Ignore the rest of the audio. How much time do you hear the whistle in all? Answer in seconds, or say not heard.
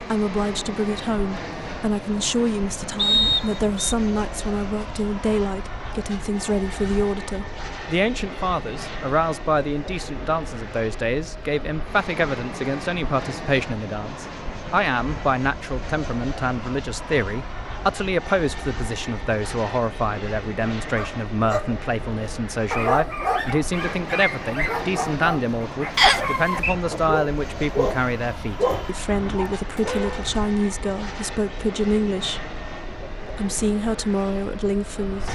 2 s.